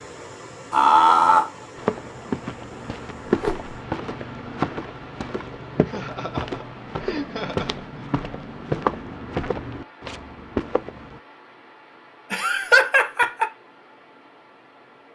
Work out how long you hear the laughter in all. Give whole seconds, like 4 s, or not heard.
4 s.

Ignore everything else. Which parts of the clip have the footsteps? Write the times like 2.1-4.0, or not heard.
1.8-11.2.